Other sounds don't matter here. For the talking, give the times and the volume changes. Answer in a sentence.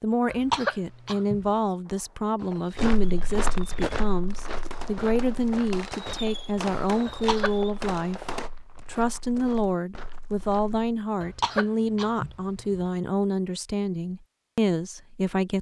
You can hear the talking from 0.0 to 15.5 s, at a steady volume.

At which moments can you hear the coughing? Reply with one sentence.
You can hear the coughing from 0.3 to 1.5 s, from 7.0 to 7.5 s and from 11.2 to 12.9 s.